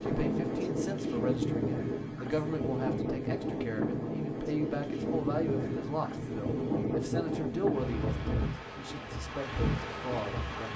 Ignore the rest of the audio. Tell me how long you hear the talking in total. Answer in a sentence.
The talking can be heard for 11 seconds in total.